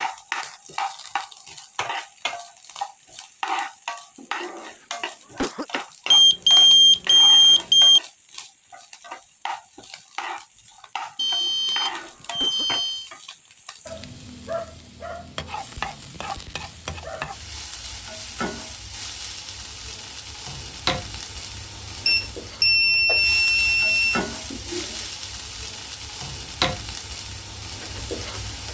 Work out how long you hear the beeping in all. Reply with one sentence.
You can hear the beeping for 6 seconds altogether.